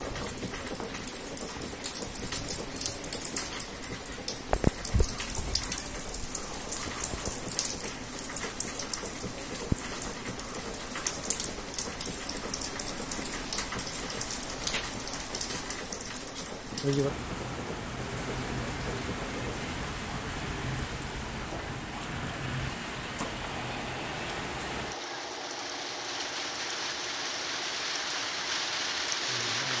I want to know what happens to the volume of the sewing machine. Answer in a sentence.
The loudness of the sewing machine stays about the same.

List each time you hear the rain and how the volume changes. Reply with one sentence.
The rain can be heard from 0.0 to 29.7 s, at a steady volume.